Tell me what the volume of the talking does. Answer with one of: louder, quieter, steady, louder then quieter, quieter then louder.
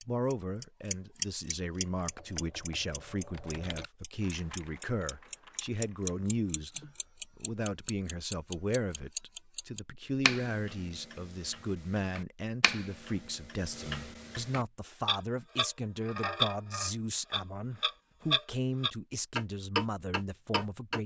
steady.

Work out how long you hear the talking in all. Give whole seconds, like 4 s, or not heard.
21 s.